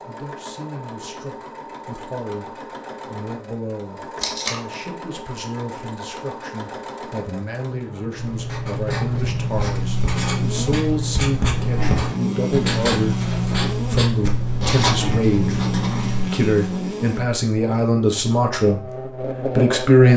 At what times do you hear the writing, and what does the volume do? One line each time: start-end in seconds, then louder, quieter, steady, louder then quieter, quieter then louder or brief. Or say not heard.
8.2-16.2 steady.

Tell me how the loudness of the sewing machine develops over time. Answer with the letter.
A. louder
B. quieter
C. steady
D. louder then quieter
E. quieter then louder
C.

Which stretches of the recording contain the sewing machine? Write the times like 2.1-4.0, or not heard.
0.0-9.6.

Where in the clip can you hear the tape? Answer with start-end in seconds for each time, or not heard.
4.2-4.6.